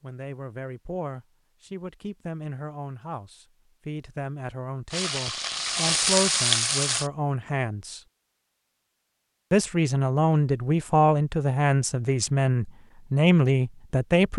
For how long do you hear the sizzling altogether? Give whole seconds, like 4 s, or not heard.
2 s.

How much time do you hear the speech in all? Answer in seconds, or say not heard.
13 s.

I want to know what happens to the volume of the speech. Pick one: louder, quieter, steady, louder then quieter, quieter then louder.
louder.